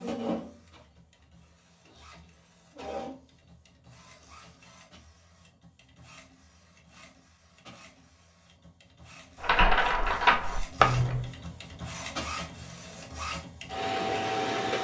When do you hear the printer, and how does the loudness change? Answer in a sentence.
You can hear the printer from 0.0 to 14.7 s, getting quieter then louder.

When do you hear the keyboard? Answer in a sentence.
You can hear the keyboard from 9.4 to 11.3 s.